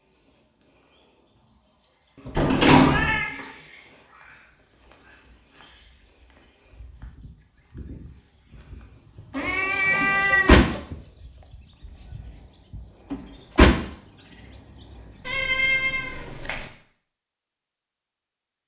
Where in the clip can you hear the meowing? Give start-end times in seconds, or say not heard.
2.1-3.5, 9.3-10.8, 15.2-16.7.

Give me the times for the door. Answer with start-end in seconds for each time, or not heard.
2.4-3.2, 10.0-10.7, 13.1-13.8.